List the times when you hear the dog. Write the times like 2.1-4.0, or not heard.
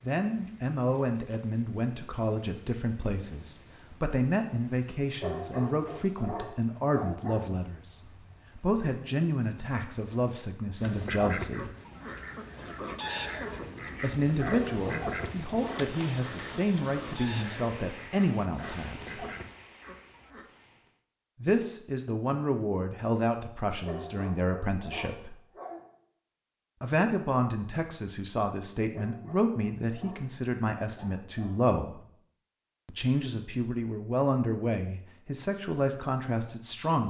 5.2-7.5, 14.5-15.8, 23.9-25.9, 28.9-31.6.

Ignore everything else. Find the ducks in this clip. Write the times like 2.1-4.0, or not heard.
10.8-20.4.